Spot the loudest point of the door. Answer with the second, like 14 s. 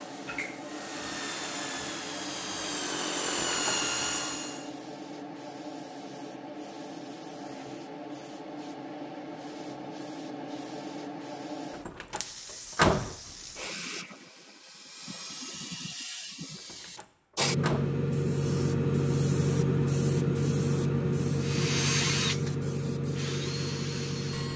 13 s.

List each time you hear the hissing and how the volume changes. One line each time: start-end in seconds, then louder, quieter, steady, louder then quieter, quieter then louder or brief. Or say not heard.
0.0-24.5 louder.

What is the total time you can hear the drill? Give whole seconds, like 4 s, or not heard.
8 s.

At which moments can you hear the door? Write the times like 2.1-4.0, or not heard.
3.2-3.9, 11.7-13.2, 16.6-18.0.